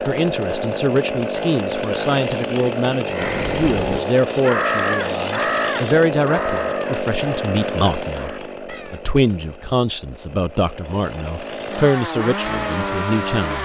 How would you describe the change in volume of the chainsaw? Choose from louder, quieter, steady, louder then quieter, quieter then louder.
quieter then louder.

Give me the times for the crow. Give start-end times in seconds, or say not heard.
3.1-9.1.